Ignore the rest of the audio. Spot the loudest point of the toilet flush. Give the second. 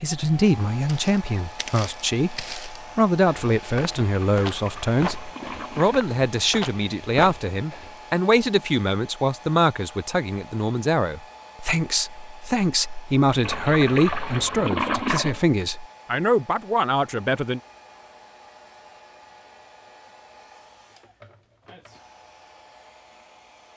15 s.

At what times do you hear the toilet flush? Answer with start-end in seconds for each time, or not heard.
4.3-6.0, 13.4-15.4.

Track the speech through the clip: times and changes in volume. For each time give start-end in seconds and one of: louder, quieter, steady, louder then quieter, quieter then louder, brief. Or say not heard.
0.0-17.6 steady.